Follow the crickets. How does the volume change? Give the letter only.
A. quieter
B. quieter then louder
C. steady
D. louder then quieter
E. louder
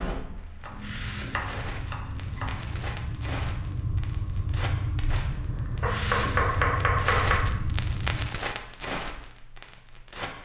E.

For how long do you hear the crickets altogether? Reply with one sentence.
You can hear the crickets for 8 seconds altogether.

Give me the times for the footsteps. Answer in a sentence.
You can't hear the footsteps here.